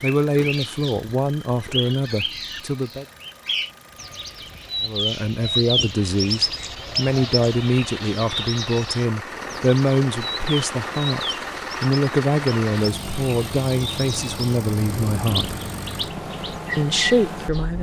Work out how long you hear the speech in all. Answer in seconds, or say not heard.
15 s.